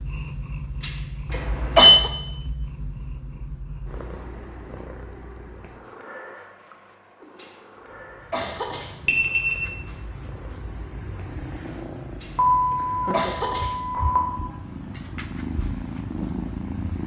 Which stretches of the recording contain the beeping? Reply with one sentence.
You can hear the beeping from 1.3 to 1.9 s, from 9.1 to 9.6 s and from 12.3 to 14.2 s.